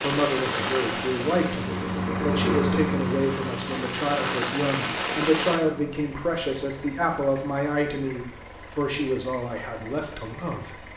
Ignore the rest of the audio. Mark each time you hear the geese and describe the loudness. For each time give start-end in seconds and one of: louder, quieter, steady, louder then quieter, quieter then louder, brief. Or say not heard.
not heard.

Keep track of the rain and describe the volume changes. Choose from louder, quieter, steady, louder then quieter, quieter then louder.
quieter then louder.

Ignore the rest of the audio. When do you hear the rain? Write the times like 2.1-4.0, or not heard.
0.0-5.6.